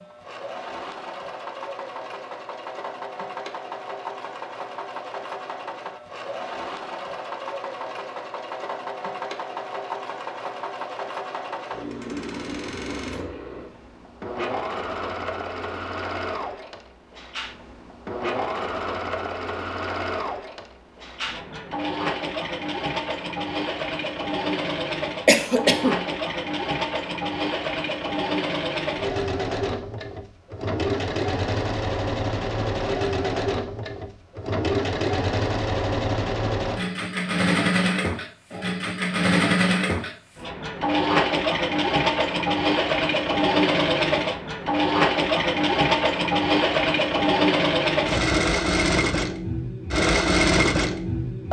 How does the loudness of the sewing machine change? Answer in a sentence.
The volume of the sewing machine goes up.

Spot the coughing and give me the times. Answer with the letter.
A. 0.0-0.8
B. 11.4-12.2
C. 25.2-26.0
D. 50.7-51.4
C.